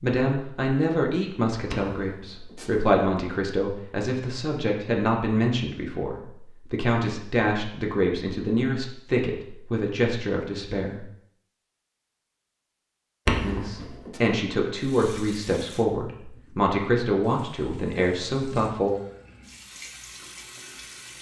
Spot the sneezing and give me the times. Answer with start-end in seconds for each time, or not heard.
1.7-2.7, 13.2-14.2.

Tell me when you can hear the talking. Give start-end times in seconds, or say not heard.
0.0-11.1, 13.4-18.9.